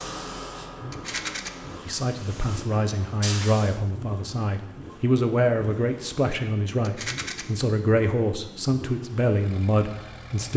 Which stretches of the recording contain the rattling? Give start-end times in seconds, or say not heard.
0.9-1.5, 6.8-7.5.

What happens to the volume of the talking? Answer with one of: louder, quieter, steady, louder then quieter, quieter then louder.
steady.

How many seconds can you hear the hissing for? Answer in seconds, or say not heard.
4 s.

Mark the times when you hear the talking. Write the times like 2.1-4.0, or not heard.
1.9-10.5.